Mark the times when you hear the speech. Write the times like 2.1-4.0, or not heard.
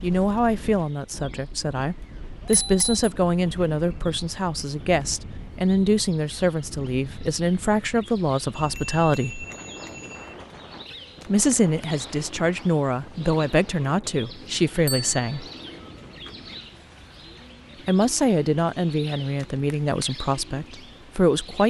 0.0-9.4, 11.2-15.4, 17.9-21.6.